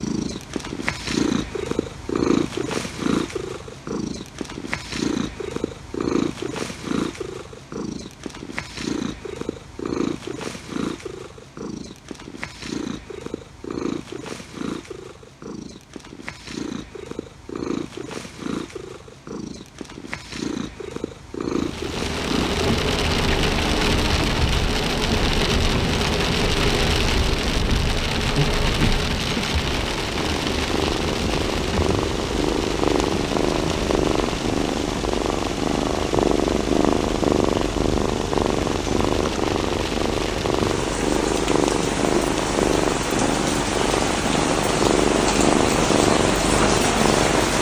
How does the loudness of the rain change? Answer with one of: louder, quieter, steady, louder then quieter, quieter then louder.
quieter then louder.